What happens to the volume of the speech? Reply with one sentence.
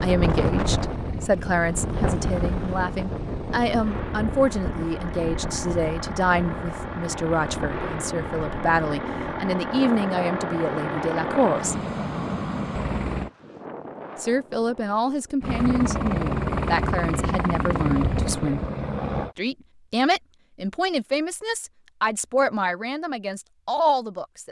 The volume of the speech stays about the same.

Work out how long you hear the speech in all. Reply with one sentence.
The speech can be heard for 21 seconds in total.